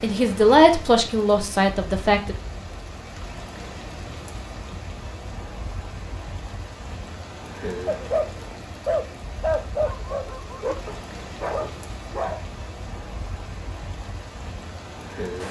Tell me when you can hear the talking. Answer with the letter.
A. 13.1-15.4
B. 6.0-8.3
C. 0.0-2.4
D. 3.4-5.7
C.